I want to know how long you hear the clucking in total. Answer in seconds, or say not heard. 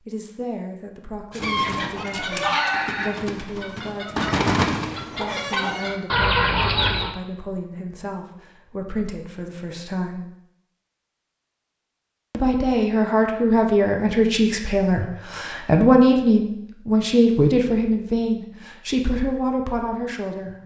6 s.